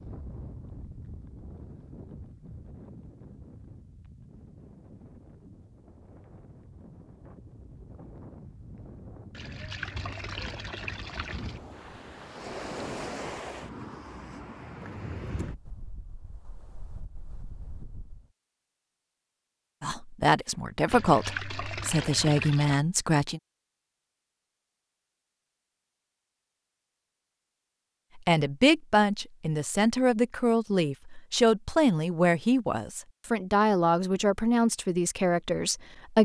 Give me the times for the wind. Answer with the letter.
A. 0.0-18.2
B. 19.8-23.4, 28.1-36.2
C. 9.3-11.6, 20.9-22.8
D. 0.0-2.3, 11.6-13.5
A.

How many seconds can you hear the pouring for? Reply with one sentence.
You can hear the pouring for 4 seconds altogether.